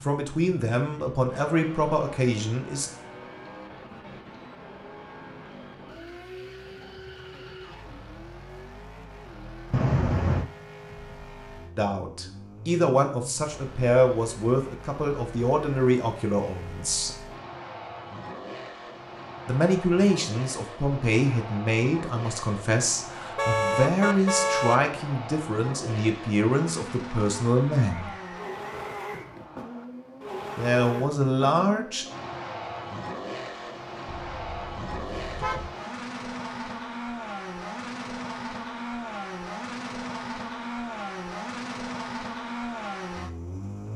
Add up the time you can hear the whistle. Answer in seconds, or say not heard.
2 s.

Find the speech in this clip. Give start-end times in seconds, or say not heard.
0.0-2.9, 11.8-17.1, 19.4-28.1, 30.6-32.0.